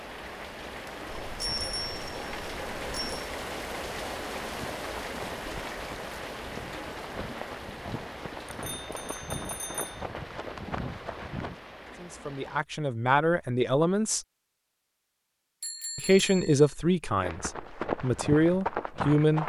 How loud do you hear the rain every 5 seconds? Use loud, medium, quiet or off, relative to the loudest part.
loud, loud, medium, off.